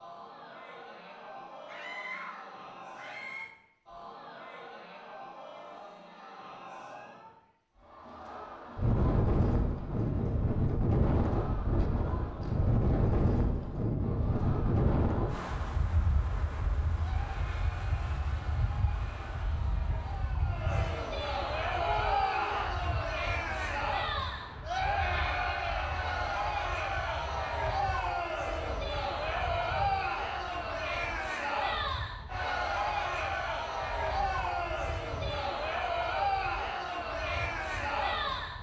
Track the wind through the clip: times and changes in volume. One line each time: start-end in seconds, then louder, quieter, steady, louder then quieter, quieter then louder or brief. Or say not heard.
8.8-38.5 quieter.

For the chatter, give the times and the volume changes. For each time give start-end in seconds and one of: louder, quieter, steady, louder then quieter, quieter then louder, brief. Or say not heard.
0.0-38.5 louder.